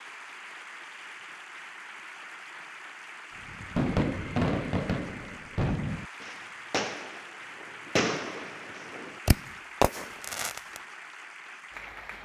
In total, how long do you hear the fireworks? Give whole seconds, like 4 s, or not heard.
7 s.